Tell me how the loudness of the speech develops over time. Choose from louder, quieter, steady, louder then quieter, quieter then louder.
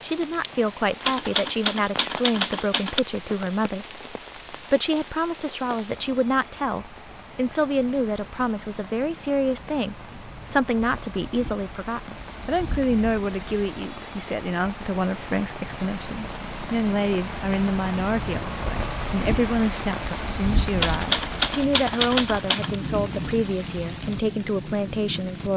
steady.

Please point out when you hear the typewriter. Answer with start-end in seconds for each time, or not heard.
1.0-3.0, 20.8-22.8.